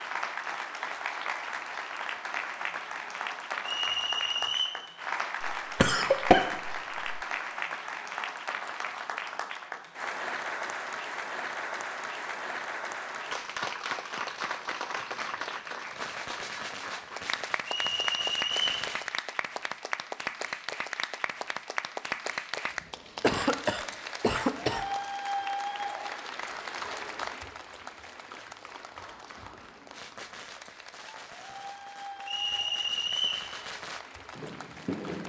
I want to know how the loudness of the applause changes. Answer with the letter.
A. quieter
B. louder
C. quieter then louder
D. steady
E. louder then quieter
A.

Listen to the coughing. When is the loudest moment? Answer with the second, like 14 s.
6 s.